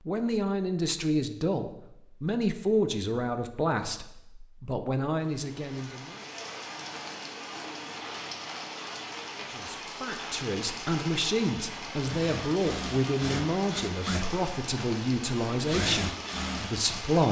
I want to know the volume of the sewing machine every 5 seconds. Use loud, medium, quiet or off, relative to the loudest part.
off, off, loud, loud.